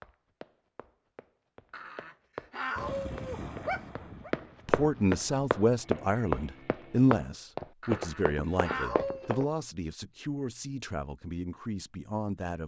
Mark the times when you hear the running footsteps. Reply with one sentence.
You can hear the running footsteps from 0.0 to 9.4 s.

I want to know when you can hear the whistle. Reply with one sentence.
The whistle can't be heard in this clip.